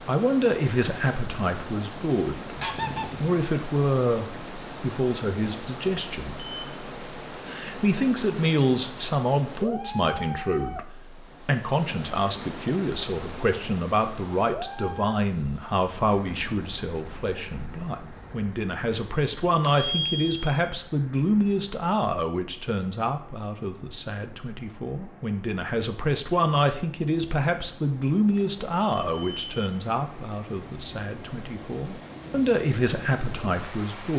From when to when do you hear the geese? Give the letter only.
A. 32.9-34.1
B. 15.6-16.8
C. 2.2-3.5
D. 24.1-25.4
C.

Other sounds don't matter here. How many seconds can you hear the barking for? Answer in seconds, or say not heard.
not heard.